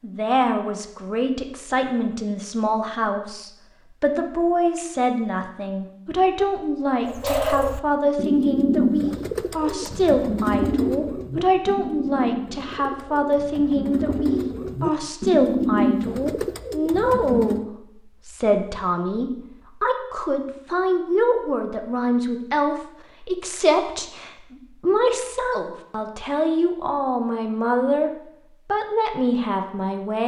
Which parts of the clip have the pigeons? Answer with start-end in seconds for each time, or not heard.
7.0-17.6.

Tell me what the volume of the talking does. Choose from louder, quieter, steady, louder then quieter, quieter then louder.
steady.